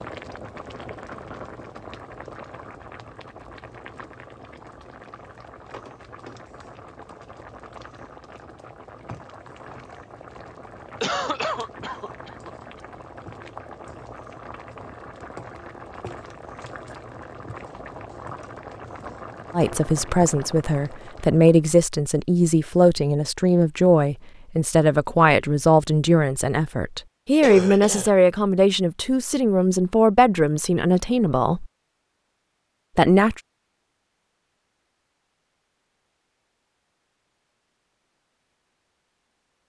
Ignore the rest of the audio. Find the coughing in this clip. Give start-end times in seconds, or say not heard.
11.0-12.8, 27.4-28.1.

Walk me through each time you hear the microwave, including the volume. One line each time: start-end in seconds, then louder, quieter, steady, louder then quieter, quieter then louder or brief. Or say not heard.
not heard.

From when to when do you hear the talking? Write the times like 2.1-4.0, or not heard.
19.5-31.7, 33.0-33.4.